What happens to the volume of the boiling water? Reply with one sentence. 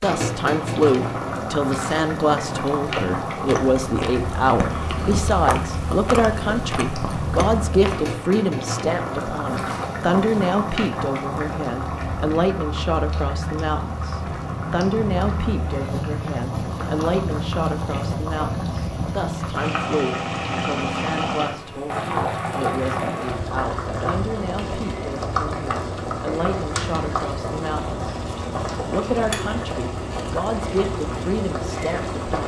The loudness of the boiling water stays about the same.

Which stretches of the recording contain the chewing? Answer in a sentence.
You can hear the chewing from 2.8 to 8.2 s.